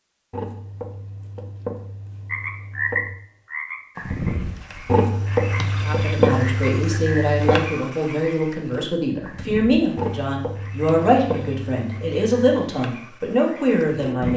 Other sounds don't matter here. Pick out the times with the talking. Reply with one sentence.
The talking can be heard from 5.8 to 14.3 s.